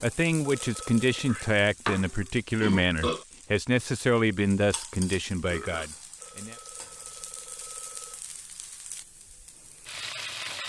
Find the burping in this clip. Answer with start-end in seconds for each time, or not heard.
1.2-3.2, 5.4-5.9.